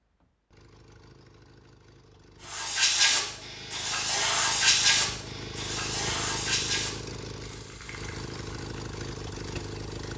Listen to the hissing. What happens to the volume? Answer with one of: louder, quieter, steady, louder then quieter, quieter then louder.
quieter.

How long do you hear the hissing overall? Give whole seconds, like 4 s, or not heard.
8 s.